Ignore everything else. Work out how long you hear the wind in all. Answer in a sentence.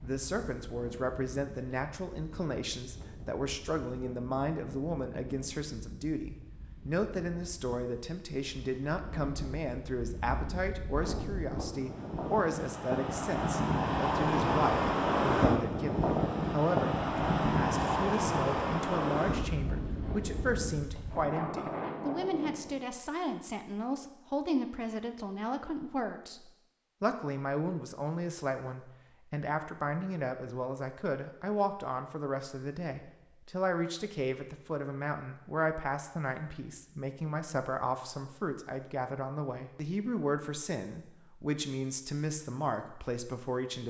You can hear the wind for 23 seconds altogether.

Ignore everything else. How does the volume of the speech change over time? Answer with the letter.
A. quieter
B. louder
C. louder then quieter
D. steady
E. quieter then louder
D.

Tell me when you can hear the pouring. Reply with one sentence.
You can't hear the pouring here.